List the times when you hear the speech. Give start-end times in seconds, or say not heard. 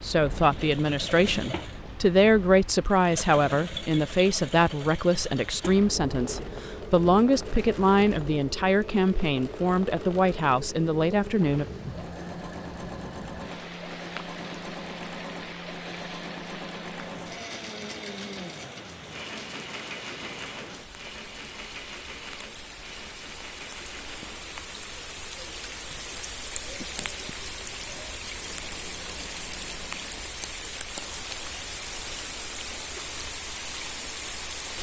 0.0-11.7.